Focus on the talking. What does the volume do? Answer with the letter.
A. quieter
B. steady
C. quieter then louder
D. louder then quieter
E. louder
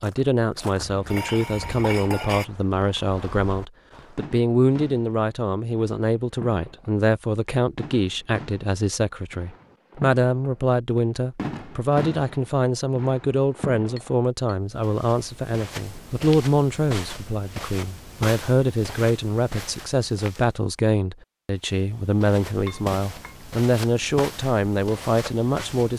B.